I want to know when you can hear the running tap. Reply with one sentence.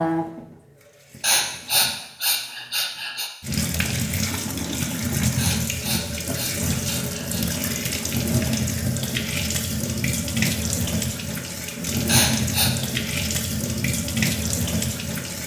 The running tap can be heard from 0.0 to 2.0 s and from 3.4 to 15.4 s.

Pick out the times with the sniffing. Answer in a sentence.
You can hear the sniffing from 1.2 to 3.3 s, from 5.3 to 7.5 s and from 12.1 to 12.7 s.